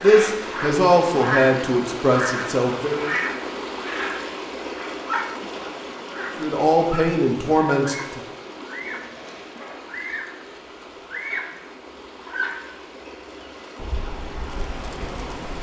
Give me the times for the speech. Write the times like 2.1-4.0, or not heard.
0.0-3.0, 6.4-8.2.